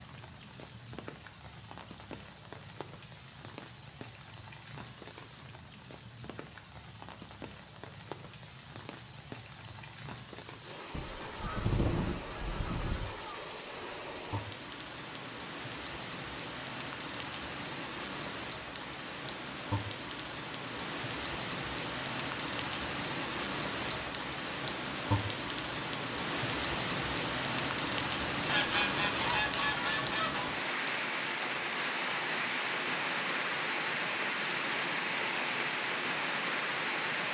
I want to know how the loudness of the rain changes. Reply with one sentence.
The loudness of the rain goes up.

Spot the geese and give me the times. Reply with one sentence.
You can hear the geese from 10.9 to 13.2 s and from 28.4 to 30.5 s.